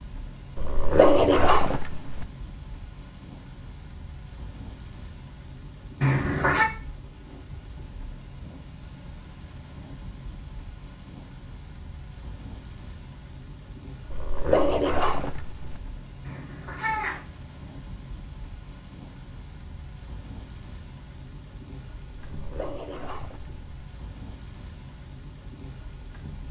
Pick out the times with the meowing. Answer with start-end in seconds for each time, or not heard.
6.0-6.7, 16.2-17.2.